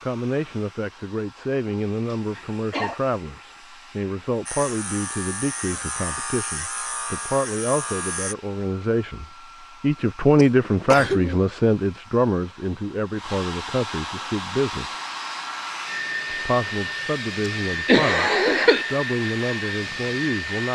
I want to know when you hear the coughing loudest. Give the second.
18 s.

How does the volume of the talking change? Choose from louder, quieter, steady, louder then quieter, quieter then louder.
louder then quieter.